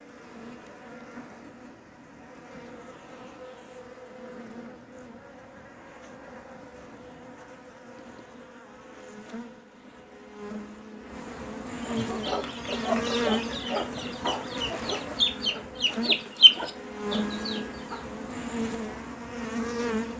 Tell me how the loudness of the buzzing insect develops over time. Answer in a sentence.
The volume of the buzzing insect goes up.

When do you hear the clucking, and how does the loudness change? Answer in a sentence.
The clucking can be heard from 11.8 to 18.0 s, getting louder then quieter.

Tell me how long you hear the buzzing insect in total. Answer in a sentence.
You can hear the buzzing insect for 20 seconds altogether.